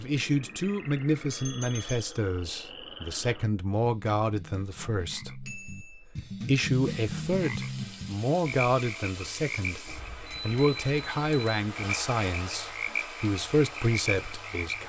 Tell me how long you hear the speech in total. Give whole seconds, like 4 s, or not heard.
15 s.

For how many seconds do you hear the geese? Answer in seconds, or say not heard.
not heard.